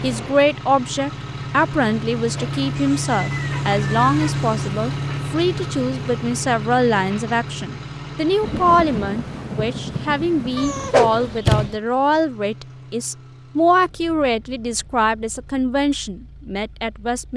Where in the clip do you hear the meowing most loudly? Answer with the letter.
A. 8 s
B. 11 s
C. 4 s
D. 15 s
B.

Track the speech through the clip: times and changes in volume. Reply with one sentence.
The speech can be heard from 0.0 to 17.3 s, at a steady volume.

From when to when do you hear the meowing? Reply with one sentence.
The meowing can be heard from 2.8 to 4.5 s and from 10.6 to 11.8 s.